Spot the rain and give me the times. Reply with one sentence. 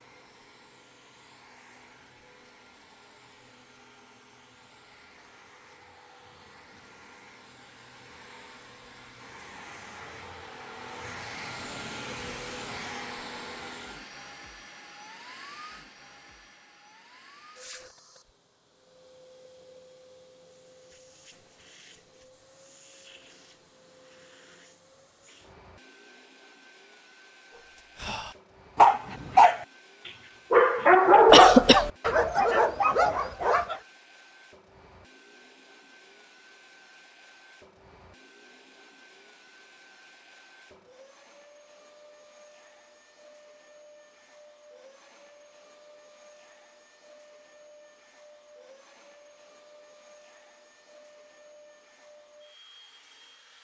The rain can't be heard in this clip.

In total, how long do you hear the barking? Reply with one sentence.
You can hear the barking for 6 seconds altogether.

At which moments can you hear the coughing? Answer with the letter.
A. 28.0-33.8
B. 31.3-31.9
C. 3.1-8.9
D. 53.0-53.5
B.